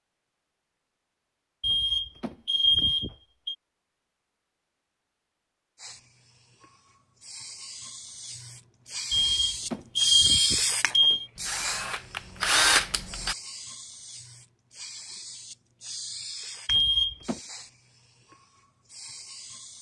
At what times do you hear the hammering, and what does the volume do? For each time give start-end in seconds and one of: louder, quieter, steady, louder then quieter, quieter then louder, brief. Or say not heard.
not heard.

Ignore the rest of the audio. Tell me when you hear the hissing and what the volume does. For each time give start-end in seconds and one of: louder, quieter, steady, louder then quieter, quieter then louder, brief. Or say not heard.
5.8-19.7 louder then quieter.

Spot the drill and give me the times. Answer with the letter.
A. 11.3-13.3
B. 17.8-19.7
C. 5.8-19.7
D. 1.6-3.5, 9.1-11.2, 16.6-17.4
A.